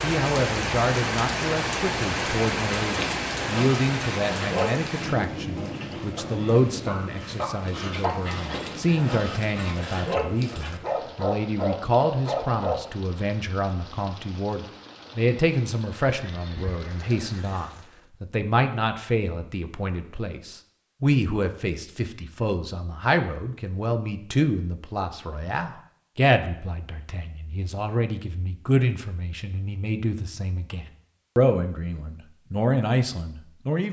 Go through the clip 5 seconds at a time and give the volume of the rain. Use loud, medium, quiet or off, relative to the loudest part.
loud, medium, quiet, quiet, off, off, off.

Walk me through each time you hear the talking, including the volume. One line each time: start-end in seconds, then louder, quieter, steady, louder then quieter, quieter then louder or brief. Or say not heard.
0.0-33.8 steady.